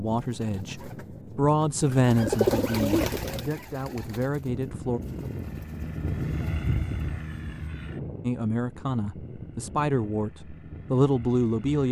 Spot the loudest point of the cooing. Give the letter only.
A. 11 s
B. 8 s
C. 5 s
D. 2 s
D.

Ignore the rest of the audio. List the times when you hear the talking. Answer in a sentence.
The talking can be heard from 0.0 to 5.0 s and from 8.2 to 11.8 s.